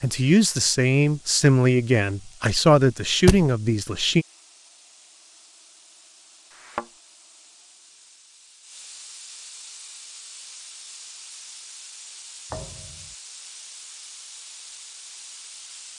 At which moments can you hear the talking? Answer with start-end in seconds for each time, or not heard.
0.0-4.2.